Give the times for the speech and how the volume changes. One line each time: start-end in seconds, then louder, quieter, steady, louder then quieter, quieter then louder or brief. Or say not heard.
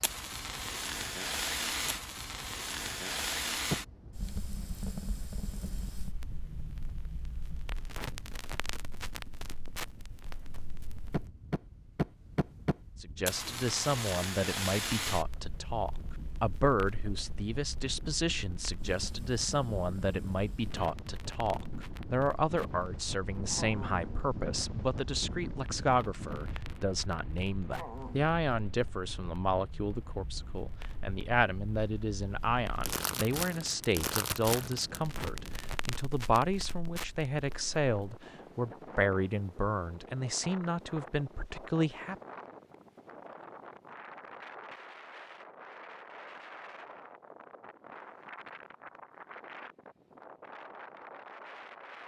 13.0-42.1 steady.